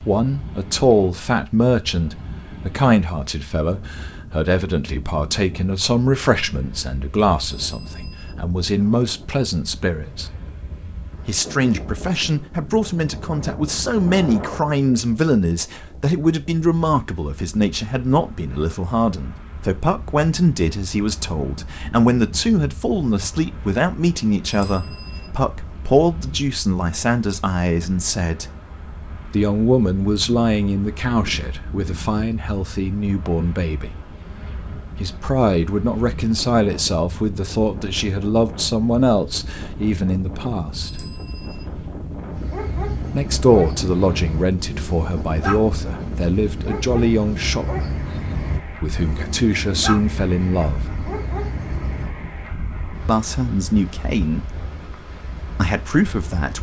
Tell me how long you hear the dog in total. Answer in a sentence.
The dog can be heard for 10 seconds in total.